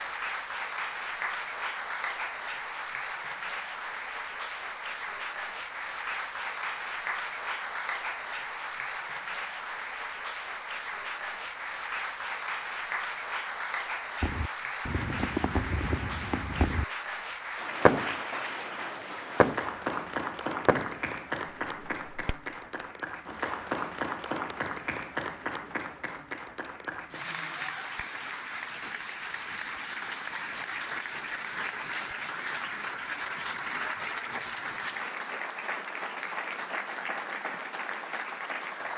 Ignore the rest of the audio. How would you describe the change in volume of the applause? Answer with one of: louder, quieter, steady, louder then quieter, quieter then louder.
steady.